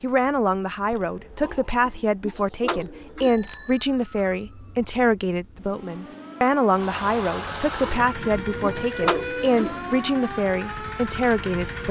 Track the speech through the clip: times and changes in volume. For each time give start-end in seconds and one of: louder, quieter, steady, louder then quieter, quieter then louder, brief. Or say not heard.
0.0-11.8 steady.